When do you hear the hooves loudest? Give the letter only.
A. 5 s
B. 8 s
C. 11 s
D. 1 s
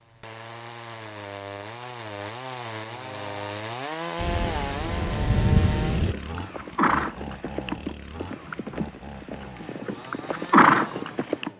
C.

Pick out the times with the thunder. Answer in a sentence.
The thunder can be heard from 4.2 to 6.2 s.